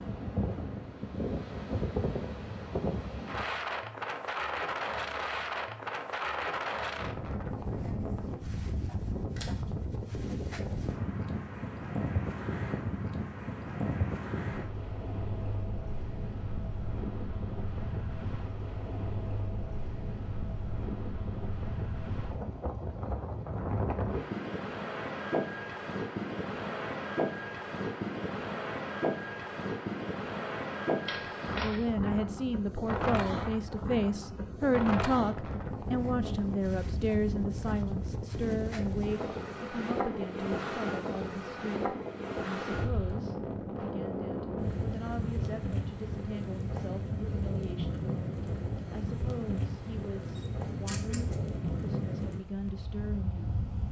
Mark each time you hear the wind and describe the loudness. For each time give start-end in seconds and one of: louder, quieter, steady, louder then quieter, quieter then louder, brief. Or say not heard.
0.0-53.8 steady.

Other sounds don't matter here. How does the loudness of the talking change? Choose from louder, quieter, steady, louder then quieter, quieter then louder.
quieter.